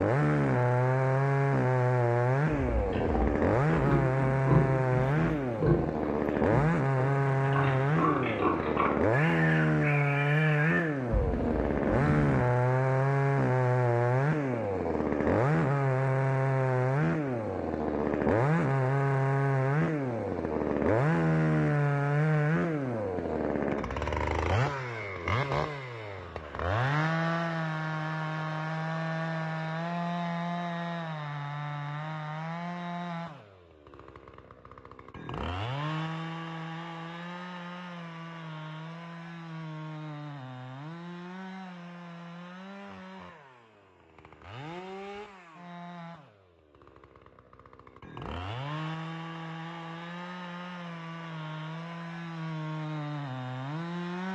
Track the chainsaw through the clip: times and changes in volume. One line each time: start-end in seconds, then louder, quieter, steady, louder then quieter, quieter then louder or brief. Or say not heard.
0.0-54.3 quieter.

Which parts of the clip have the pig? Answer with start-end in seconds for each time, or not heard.
2.5-12.3.